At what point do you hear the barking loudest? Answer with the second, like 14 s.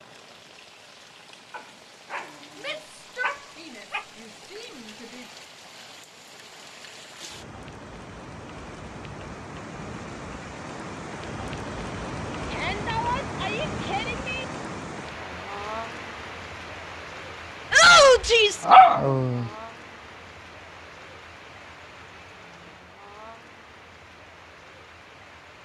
19 s.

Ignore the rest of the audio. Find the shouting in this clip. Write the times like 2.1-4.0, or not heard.
2.5-5.2, 12.4-14.4, 17.7-18.6.